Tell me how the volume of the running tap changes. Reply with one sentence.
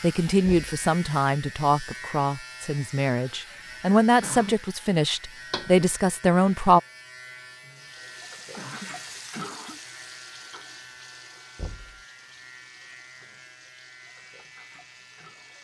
The volume of the running tap goes down.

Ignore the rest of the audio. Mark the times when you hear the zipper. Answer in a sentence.
You can't hear the zipper here.